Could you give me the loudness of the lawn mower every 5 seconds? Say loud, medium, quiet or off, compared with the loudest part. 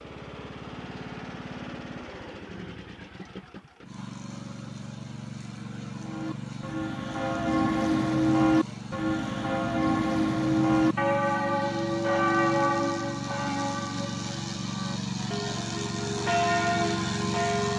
medium, medium, loud, loud.